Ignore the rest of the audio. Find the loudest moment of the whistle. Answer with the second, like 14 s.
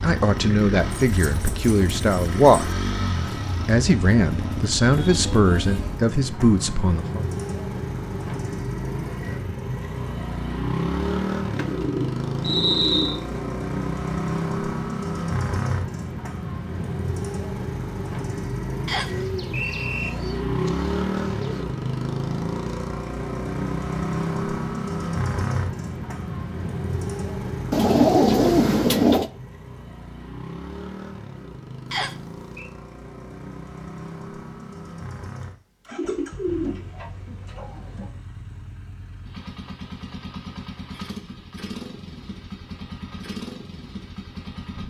13 s.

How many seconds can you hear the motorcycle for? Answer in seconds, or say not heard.
45 s.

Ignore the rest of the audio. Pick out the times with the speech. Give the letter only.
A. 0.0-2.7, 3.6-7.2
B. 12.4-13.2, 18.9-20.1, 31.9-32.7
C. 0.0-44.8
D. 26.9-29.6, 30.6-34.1
A.